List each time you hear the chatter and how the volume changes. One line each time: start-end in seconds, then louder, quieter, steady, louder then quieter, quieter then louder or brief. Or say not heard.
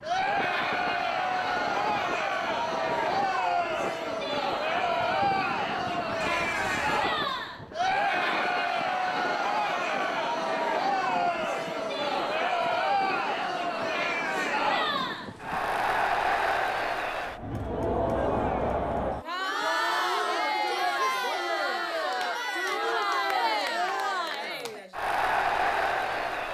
0.0-26.4 steady.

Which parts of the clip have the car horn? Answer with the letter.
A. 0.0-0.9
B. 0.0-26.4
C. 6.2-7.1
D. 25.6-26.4
C.